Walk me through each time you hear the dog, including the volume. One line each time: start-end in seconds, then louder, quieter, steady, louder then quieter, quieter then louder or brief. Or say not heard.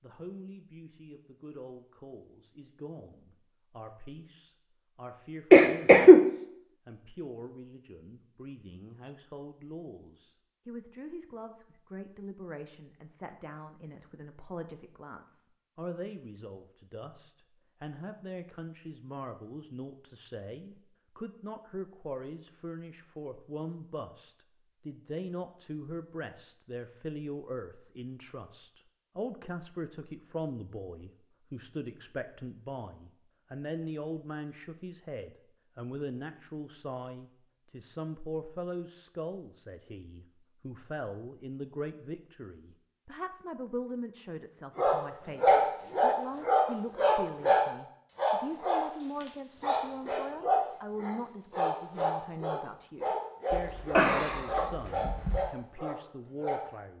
44.8-56.6 quieter.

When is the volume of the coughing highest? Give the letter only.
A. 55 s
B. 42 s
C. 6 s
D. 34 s
C.